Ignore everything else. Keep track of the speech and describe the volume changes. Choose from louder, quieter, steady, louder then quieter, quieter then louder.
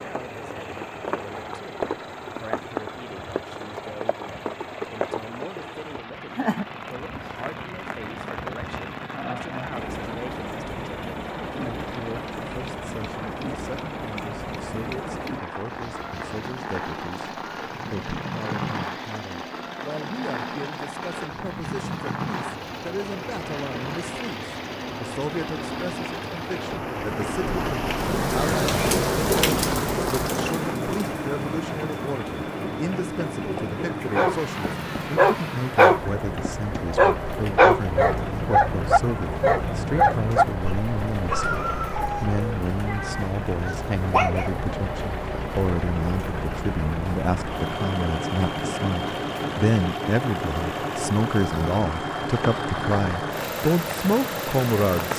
louder.